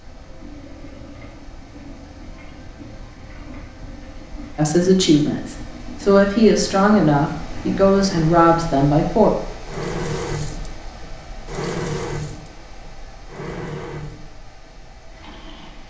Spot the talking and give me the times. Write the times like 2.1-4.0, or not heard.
4.5-9.3.